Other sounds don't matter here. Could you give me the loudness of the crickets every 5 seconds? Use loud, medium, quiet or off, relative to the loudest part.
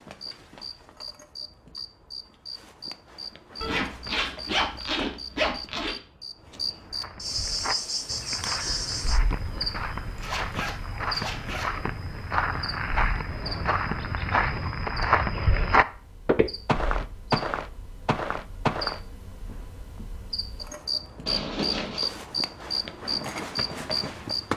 medium, loud, medium, medium, loud.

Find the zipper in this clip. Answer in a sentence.
The zipper can be heard from 3.6 to 6.0 s, from 10.2 to 11.7 s and from 21.2 to 22.1 s.